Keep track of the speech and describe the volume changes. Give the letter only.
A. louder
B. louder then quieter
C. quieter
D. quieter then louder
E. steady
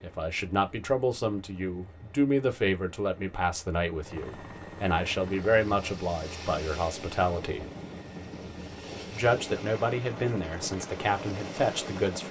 E.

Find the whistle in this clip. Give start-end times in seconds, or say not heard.
not heard.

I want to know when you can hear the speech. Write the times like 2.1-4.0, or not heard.
0.0-7.7, 9.1-12.2.